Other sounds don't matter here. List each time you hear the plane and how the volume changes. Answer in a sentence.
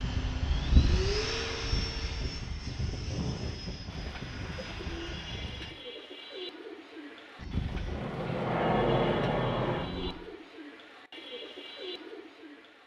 You can hear the plane from 0.0 to 5.7 s, getting quieter; and briefly from 7.3 to 10.2 s.